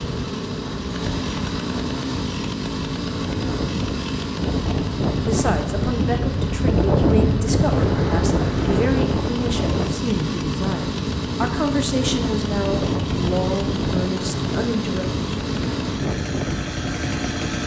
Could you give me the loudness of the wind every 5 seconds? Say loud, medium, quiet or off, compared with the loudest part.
medium, loud, medium, medium.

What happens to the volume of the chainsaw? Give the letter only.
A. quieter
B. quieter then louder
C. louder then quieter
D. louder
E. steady
E.